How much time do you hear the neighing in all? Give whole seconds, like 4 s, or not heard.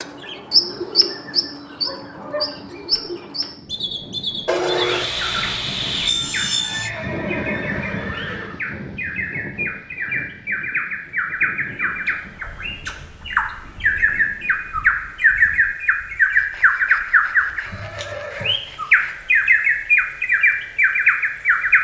3 s.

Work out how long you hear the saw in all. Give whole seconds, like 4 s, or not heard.
5 s.